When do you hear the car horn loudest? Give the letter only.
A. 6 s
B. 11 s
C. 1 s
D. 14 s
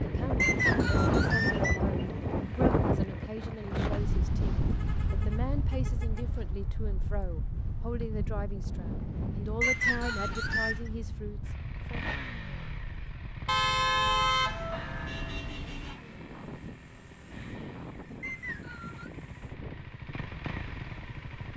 D.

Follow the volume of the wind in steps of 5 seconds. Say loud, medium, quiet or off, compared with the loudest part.
loud, medium, quiet, quiet, quiet.